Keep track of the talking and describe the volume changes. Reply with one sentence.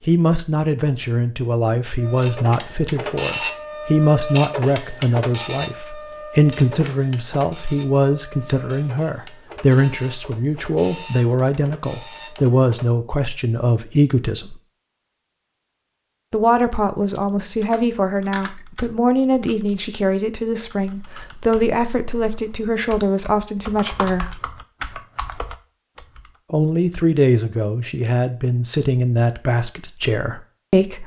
The volume of the talking stays about the same.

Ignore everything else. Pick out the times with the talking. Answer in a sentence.
The talking can be heard from 0.1 to 14.6 s, from 16.3 to 24.3 s and from 26.5 to 31.0 s.